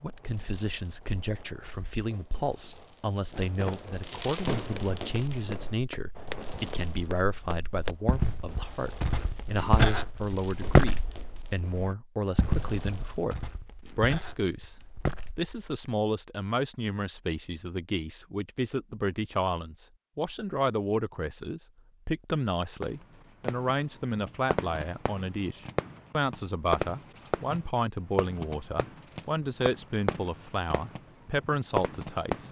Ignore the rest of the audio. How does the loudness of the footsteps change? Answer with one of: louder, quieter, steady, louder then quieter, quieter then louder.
louder then quieter.